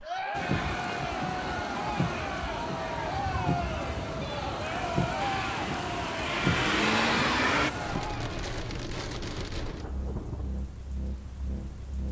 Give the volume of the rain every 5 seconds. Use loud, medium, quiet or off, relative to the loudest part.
loud, loud, medium.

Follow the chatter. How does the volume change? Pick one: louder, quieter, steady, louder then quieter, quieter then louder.
steady.